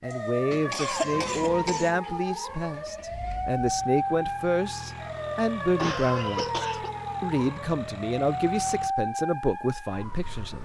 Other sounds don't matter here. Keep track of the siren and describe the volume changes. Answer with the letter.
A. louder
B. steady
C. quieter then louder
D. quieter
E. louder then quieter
B.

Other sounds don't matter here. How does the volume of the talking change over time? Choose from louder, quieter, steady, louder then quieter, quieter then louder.
steady.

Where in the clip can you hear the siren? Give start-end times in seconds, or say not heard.
0.0-10.5.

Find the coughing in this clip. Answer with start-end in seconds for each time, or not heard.
0.1-1.9, 5.8-7.0.